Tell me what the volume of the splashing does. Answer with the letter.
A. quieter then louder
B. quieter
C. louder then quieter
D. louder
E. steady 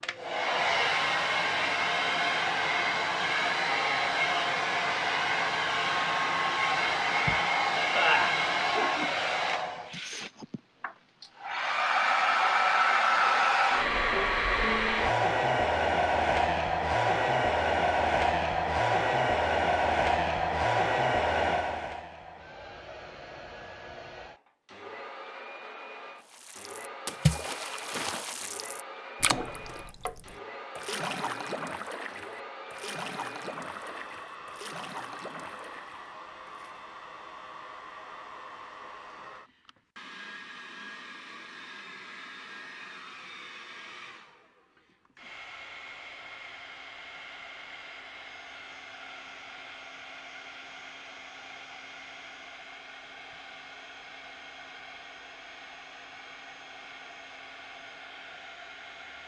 B.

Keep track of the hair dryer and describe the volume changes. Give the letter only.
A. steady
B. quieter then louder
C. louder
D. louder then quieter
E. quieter
E.